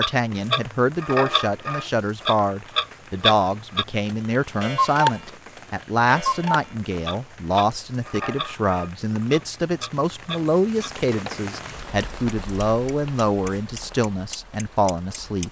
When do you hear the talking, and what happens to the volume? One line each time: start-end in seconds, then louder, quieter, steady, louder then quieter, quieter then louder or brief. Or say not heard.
0.0-15.4 steady.